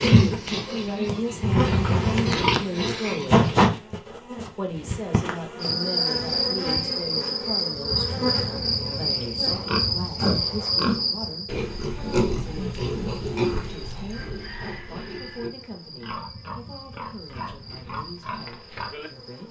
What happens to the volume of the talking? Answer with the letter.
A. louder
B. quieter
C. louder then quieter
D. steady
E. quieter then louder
B.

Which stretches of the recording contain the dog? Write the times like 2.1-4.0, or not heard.
not heard.